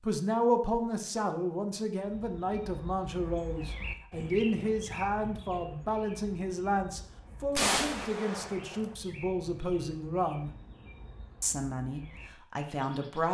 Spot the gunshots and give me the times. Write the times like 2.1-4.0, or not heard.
7.5-8.9.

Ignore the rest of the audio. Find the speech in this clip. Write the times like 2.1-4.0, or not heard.
0.0-10.5, 11.4-13.3.